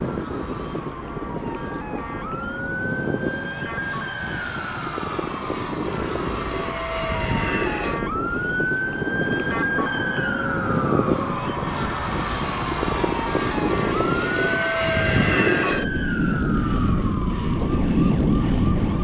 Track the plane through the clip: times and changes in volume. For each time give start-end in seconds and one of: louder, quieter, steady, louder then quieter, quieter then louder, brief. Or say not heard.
0.0-19.0 louder.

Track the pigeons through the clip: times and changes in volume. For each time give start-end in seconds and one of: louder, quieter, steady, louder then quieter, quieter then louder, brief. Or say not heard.
not heard.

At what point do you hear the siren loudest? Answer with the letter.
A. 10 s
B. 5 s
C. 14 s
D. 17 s
A.